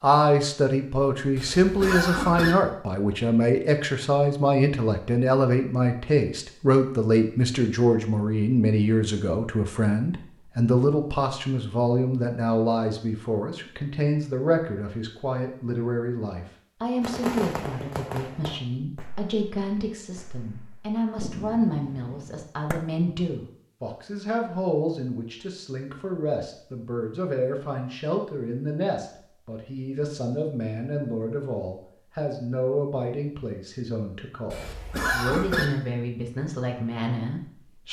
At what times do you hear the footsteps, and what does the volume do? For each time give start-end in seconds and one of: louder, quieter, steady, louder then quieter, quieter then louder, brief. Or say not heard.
not heard.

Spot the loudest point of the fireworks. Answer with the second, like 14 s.
17 s.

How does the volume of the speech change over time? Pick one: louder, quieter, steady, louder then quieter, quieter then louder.
quieter.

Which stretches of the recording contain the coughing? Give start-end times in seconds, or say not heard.
1.4-2.5, 34.5-35.6.